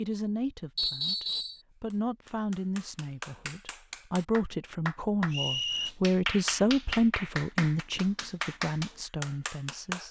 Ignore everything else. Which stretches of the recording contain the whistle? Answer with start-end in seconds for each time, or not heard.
0.8-1.6, 5.3-5.9.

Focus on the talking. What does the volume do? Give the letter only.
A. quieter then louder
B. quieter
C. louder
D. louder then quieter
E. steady
D.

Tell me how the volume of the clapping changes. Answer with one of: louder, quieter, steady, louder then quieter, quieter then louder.
louder.